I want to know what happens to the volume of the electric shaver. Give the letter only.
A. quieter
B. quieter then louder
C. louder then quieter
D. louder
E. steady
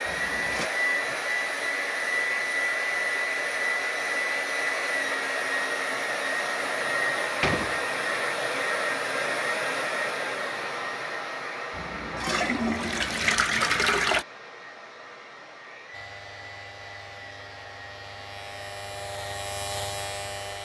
D.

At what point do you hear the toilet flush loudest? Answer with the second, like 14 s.
14 s.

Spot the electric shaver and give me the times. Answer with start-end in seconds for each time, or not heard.
15.9-20.5.